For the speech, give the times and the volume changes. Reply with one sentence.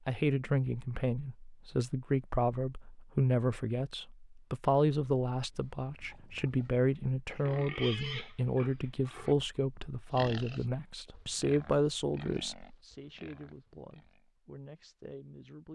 You can hear the speech from 0.1 to 15.7 s, getting quieter.